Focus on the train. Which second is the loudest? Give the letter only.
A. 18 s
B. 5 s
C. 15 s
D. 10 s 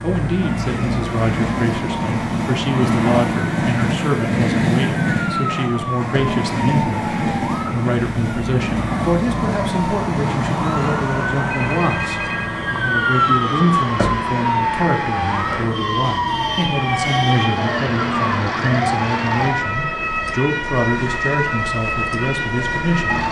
B.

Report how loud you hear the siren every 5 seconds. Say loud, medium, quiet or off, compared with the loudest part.
medium, medium, loud, loud, loud.